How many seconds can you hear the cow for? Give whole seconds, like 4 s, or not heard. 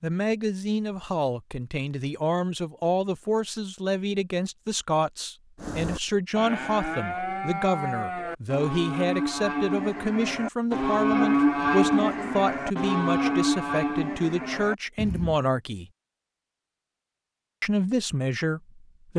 10 s.